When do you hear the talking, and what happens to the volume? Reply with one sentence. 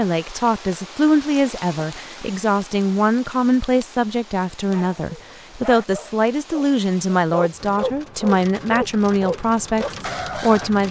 You can hear the talking from 0.0 to 10.8 s, at a steady volume.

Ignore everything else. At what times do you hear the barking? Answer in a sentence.
You can hear the barking from 4.7 to 10.7 s.